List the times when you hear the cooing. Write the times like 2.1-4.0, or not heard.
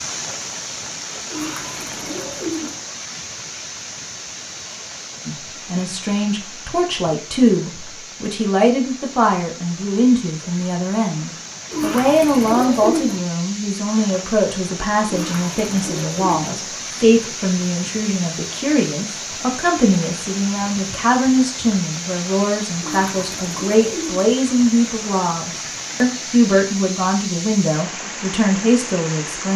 1.3-2.8, 11.7-13.2, 15.1-16.5, 22.8-24.2.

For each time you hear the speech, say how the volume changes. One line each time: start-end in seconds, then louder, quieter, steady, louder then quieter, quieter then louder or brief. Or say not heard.
5.2-29.5 steady.